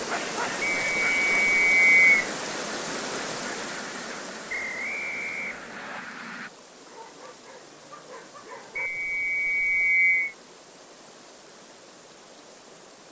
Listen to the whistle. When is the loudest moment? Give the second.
2 s.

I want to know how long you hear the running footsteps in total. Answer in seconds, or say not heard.
not heard.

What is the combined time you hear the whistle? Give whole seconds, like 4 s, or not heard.
5 s.